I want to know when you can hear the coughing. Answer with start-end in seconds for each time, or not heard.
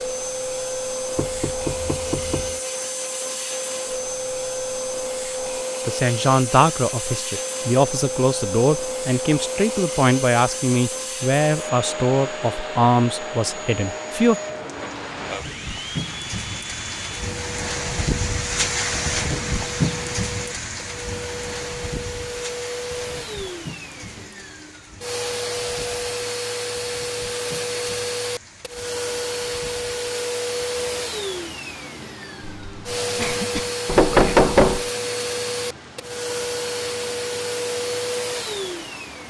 32.4-33.7.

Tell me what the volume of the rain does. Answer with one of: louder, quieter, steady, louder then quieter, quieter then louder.
quieter.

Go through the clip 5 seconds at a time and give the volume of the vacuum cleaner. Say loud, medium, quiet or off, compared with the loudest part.
loud, loud, loud, medium, medium, loud, loud, loud.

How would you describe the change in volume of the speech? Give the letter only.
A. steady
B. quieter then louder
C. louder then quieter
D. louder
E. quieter
A.